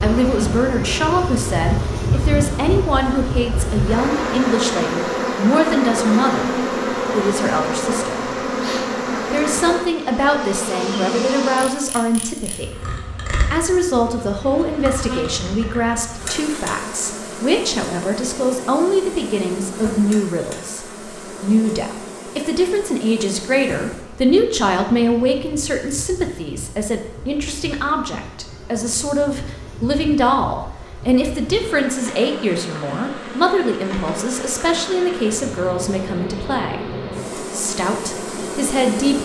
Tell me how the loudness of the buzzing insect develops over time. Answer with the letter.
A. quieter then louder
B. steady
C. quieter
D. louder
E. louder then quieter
A.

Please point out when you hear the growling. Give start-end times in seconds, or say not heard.
not heard.